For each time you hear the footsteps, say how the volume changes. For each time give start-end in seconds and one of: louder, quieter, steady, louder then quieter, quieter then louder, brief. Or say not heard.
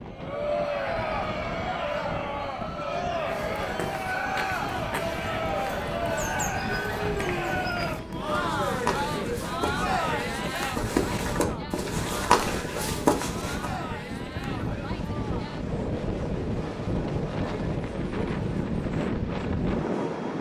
3.2-13.8 louder.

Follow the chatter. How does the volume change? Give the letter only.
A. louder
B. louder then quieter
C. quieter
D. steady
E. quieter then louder
C.